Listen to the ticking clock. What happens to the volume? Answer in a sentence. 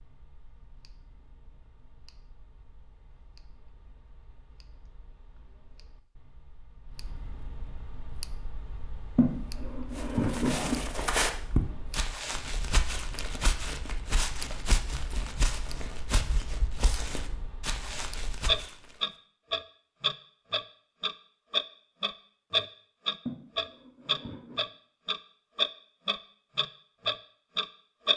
The loudness of the ticking clock goes up.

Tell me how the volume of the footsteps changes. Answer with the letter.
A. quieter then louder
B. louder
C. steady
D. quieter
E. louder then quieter
D.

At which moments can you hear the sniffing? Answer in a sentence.
You can hear the sniffing from 9.2 to 10.8 s and from 23.2 to 24.6 s.